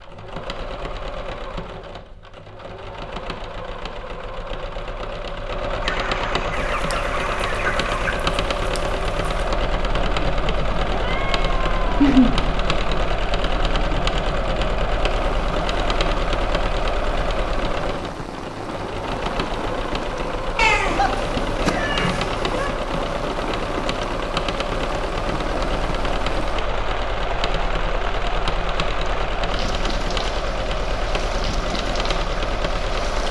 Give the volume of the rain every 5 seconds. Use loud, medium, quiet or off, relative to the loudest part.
off, medium, loud, loud, loud, loud, loud.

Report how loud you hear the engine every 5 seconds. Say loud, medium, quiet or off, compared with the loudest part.
medium, loud, loud, loud, loud, loud, loud.